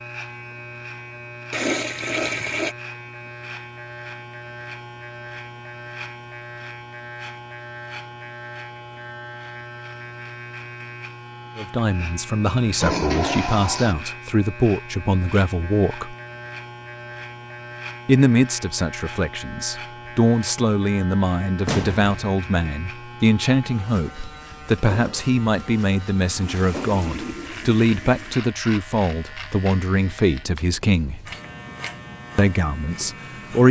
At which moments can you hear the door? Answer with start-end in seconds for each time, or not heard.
21.6-22.2.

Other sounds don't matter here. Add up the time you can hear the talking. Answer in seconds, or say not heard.
19 s.